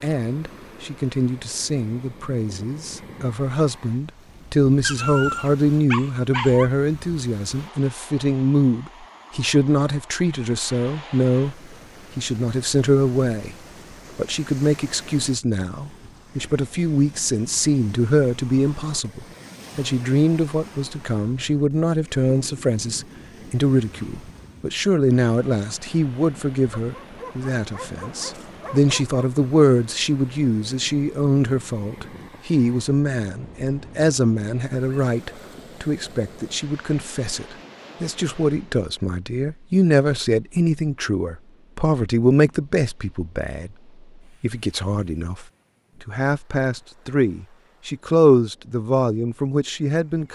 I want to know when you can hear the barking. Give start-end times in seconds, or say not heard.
4.8-6.7, 26.7-29.4.